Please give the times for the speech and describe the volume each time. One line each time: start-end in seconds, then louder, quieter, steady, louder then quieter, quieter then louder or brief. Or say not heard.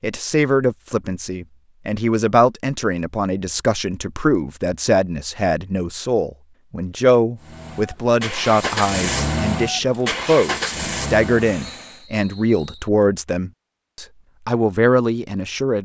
0.0-15.7 steady.